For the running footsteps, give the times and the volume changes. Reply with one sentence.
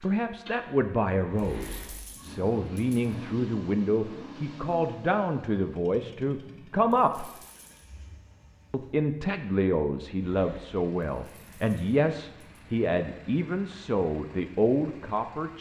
The running footsteps can't be heard in this clip.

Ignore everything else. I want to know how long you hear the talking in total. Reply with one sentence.
The talking can be heard for 14 seconds in total.